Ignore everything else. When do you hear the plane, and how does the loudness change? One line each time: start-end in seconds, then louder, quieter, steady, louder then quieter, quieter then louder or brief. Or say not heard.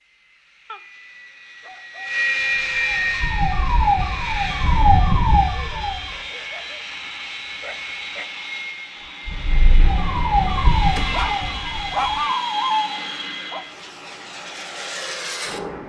0.0-15.8 quieter.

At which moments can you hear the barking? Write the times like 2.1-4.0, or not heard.
0.7-2.1, 6.1-8.3, 10.8-13.7.